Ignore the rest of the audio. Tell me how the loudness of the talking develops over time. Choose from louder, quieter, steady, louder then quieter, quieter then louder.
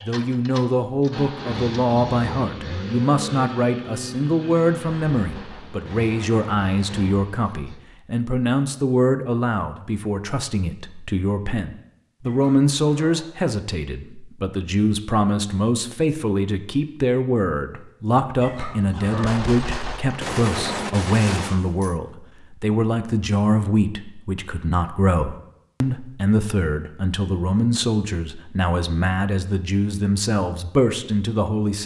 steady.